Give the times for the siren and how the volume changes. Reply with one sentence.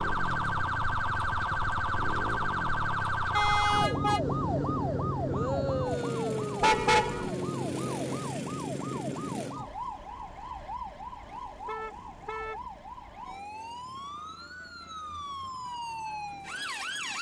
You can hear the siren from 0.0 to 17.1 s, getting quieter.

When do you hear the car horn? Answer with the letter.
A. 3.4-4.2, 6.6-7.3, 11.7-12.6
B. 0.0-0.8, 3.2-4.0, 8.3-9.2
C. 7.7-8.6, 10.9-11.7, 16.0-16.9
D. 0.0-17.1
A.